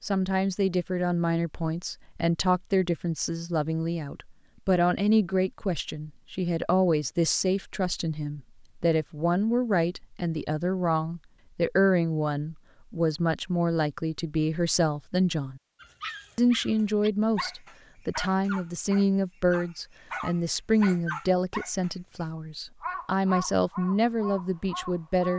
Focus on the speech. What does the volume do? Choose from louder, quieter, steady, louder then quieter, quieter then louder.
steady.